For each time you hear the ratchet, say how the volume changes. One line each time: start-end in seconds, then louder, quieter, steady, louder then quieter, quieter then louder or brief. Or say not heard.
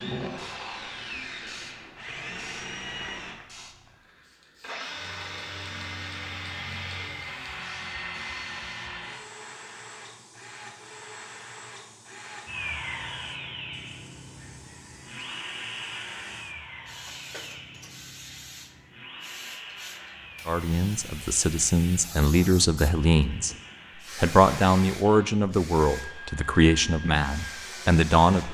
not heard.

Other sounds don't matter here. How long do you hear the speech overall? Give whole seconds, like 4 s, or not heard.
7 s.